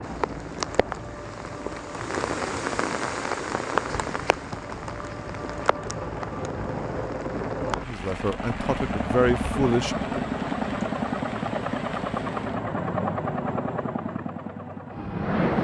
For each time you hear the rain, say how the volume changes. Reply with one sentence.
You can hear the rain from 0.0 to 12.7 s, getting quieter.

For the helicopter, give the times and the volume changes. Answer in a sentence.
The helicopter can be heard from 0.0 to 15.5 s, getting louder.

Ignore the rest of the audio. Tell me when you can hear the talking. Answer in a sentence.
The talking can be heard from 7.8 to 10.3 s.